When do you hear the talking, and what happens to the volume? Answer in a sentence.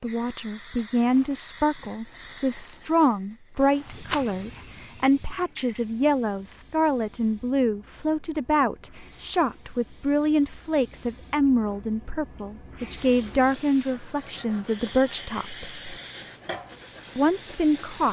The talking can be heard from 0.0 to 15.9 s, at a steady volume; and briefly from 17.1 to 18.0 s.